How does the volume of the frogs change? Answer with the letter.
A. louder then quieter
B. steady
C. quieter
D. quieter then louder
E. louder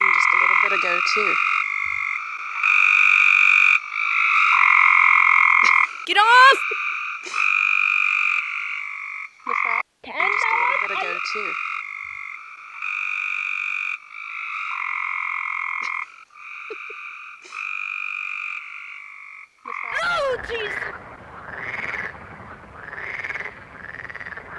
C.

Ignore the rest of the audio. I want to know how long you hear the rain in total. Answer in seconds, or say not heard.
not heard.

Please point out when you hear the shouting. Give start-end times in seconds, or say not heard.
6.0-6.5, 10.0-11.2, 19.9-20.9.